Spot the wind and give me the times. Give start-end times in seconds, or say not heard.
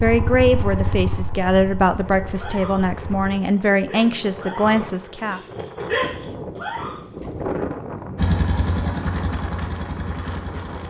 2.0-10.8.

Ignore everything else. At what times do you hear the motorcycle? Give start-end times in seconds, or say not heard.
0.0-3.4, 8.2-10.8.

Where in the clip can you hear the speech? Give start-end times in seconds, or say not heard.
0.0-5.4.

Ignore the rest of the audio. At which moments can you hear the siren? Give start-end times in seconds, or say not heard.
not heard.